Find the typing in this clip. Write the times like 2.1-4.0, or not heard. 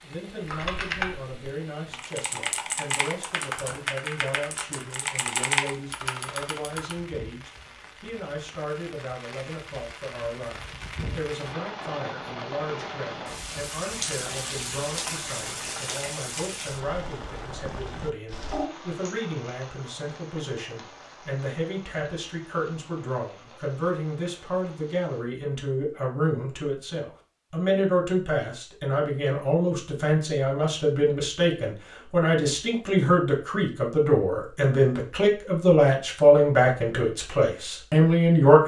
0.5-7.0.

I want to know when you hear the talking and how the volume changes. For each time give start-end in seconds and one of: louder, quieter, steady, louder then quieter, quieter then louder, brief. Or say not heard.
0.0-38.6 louder.